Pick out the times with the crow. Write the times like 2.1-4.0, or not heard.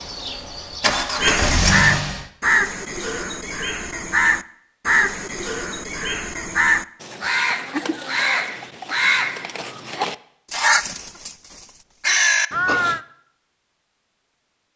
1.2-13.0.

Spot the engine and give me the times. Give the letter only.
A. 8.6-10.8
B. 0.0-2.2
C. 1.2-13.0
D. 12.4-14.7
B.